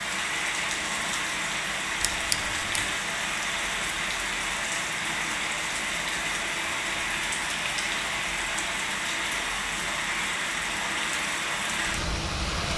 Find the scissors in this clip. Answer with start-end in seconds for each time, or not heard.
2.0-2.9.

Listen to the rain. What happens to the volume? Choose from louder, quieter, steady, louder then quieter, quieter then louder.
steady.